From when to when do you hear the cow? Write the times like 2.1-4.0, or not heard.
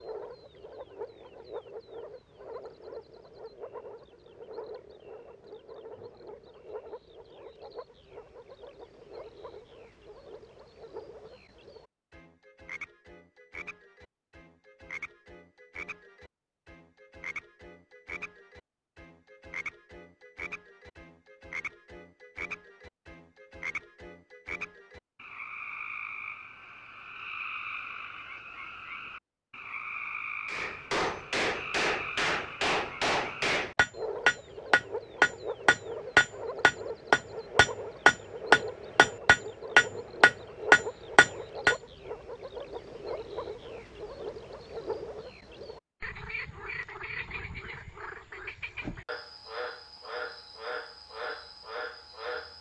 not heard.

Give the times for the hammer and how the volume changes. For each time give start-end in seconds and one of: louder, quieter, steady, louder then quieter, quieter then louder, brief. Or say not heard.
30.4-41.8 louder.